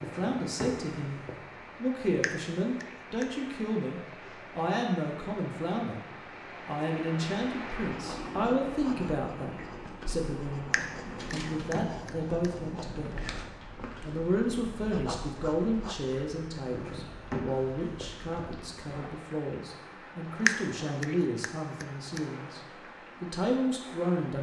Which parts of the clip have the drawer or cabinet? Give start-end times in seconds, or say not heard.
0.0-1.4, 10.8-11.9, 16.7-18.5.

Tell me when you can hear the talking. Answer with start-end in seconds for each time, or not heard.
0.0-1.2, 1.8-6.0, 6.7-13.2, 14.0-22.6, 23.2-24.3.